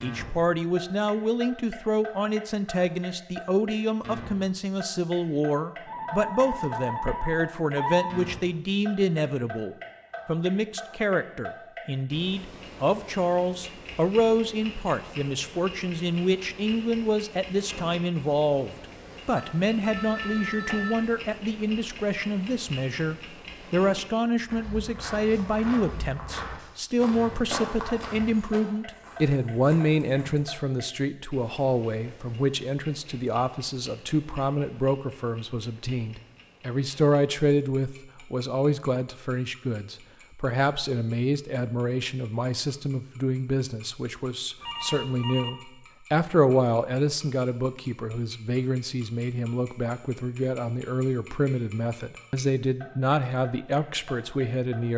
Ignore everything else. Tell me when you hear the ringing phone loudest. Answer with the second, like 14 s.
8 s.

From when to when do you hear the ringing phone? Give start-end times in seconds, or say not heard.
5.8-8.2, 19.4-21.1, 44.6-45.5.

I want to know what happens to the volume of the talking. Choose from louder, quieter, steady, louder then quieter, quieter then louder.
steady.